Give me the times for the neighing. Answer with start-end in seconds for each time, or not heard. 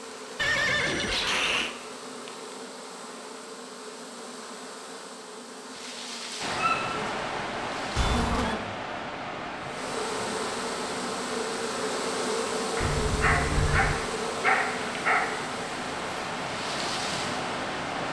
0.3-1.8, 8.0-8.6, 12.8-14.0.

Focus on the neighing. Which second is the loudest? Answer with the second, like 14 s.
1 s.